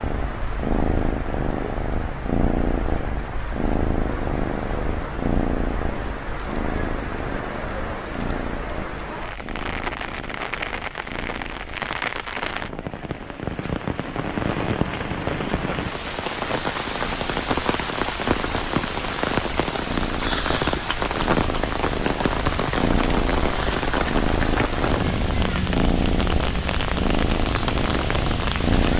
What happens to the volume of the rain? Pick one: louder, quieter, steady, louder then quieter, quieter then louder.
louder.